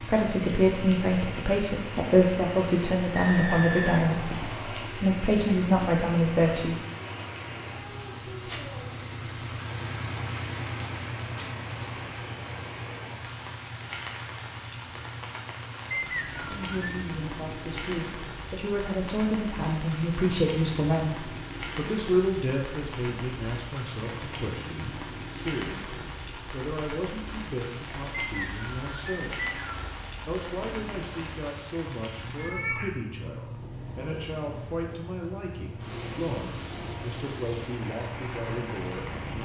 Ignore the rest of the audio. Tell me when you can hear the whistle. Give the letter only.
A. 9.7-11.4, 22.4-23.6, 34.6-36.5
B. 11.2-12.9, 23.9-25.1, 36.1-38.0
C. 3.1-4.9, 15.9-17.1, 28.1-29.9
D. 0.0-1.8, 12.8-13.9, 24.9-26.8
C.